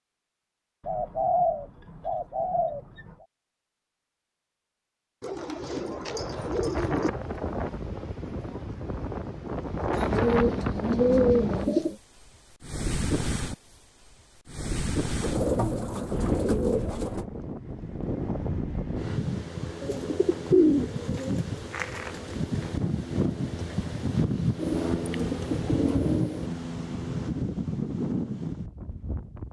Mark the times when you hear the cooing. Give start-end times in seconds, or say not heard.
0.8-3.2, 5.2-7.1, 10.1-11.9, 15.2-17.2, 19.8-22.4, 24.6-26.5.